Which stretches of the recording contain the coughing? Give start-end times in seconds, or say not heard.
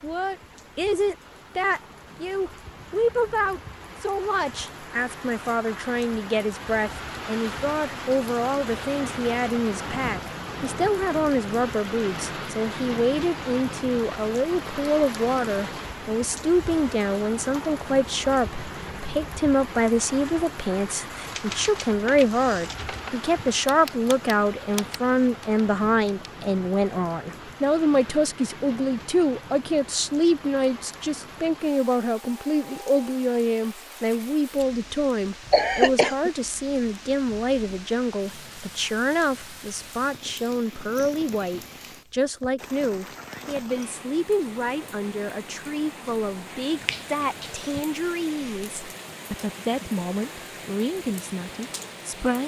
35.5-36.3.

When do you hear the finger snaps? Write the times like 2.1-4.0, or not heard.
46.6-47.9.